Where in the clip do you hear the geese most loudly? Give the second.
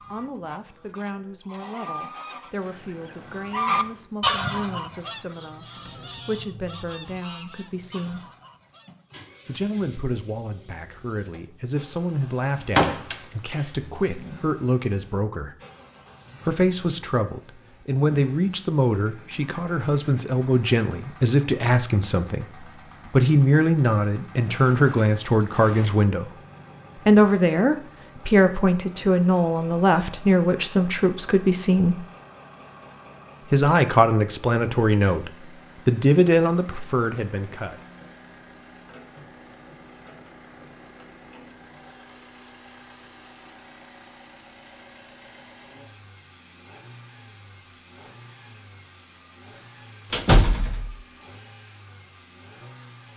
4 s.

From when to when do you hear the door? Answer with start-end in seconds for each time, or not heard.
12.8-13.6, 24.5-26.0, 50.1-51.0.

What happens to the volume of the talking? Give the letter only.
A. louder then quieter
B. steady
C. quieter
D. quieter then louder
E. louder
E.